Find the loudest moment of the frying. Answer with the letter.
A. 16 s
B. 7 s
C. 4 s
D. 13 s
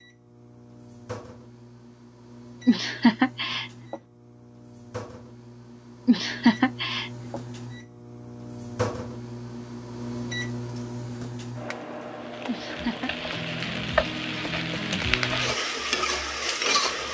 A.